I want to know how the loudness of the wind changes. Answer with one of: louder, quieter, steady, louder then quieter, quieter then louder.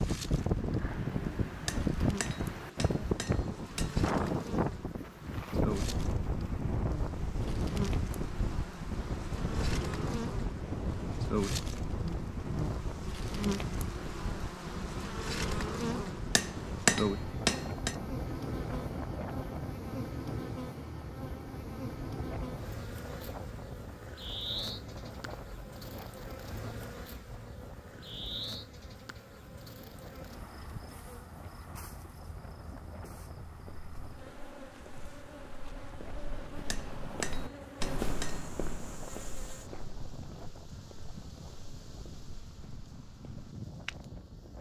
quieter.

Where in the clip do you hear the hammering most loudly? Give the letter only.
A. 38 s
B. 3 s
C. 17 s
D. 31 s
C.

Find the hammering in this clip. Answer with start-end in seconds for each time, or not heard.
1.6-4.0, 16.4-17.9, 36.7-38.5.